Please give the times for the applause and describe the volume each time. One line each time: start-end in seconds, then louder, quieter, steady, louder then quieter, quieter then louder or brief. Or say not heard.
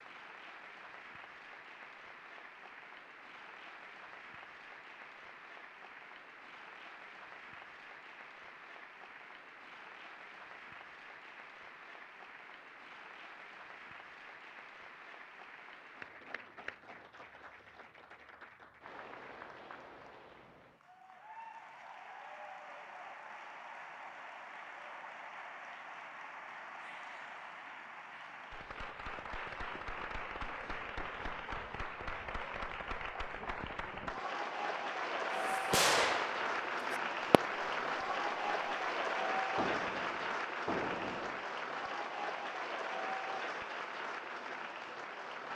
0.0-45.5 louder.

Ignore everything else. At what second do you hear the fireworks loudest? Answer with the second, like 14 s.
36 s.